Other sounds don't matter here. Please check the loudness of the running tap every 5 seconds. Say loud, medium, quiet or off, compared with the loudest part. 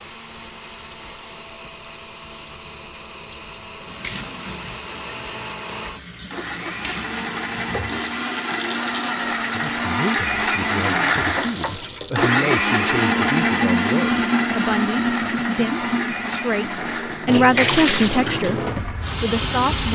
quiet, medium, loud, loud.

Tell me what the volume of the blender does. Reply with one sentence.
The loudness of the blender goes up, then down.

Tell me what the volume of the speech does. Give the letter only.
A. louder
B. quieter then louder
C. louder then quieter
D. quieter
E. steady
A.